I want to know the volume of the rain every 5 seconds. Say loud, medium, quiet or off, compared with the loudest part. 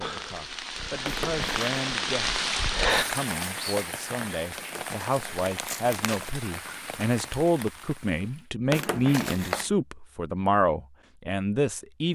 loud, medium, off.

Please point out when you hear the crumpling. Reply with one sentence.
The crumpling can be heard from 1.0 to 1.7 s, from 4.5 to 6.3 s and from 8.7 to 9.7 s.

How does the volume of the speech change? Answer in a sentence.
The volume of the speech goes up.